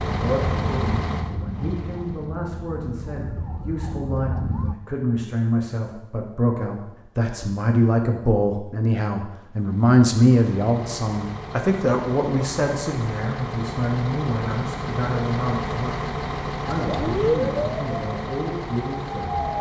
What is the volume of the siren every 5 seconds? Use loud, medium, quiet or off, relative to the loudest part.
medium, off, off, loud.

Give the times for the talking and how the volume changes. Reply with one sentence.
The talking can be heard from 0.1 to 19.4 s, getting louder then quieter.